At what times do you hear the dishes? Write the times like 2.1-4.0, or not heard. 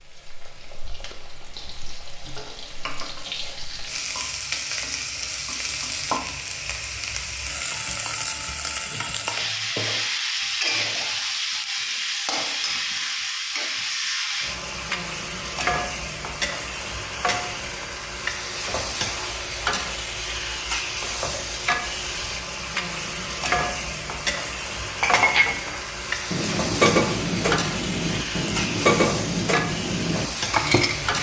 25.0-31.1.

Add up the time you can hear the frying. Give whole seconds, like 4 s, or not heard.
31 s.